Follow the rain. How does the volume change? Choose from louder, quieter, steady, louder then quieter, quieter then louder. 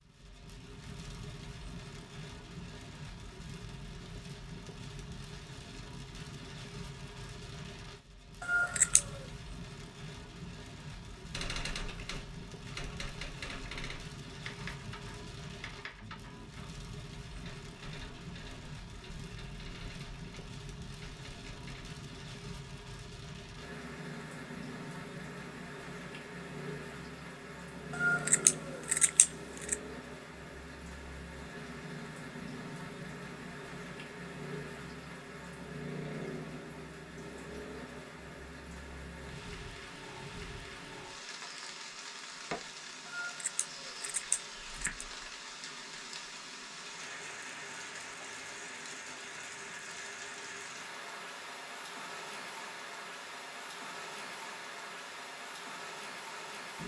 steady.